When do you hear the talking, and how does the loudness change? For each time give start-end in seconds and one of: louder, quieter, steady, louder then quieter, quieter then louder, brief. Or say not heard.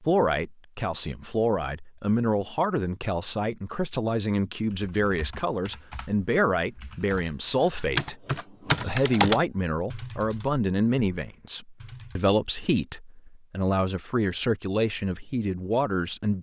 0.0-16.3 steady.